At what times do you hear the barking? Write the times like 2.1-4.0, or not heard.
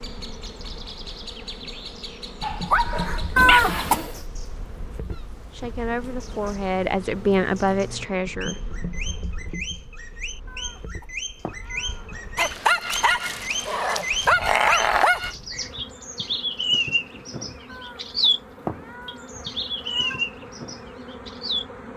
2.4-4.0, 12.3-15.3.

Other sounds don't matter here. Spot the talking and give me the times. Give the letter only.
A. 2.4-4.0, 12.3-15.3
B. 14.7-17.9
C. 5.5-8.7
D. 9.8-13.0
C.